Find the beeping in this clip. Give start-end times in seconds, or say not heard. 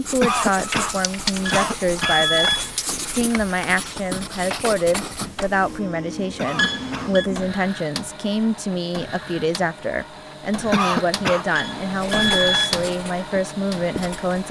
1.4-2.8, 6.5-7.3, 11.6-12.8.